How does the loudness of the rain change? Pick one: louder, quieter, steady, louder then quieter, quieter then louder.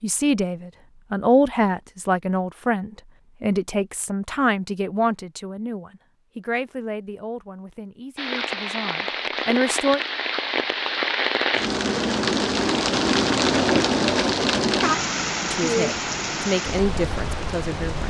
louder then quieter.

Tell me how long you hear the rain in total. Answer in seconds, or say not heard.
10 s.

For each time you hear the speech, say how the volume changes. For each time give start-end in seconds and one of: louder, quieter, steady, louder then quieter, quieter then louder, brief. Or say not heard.
0.0-10.0 quieter
15.4-18.0 brief.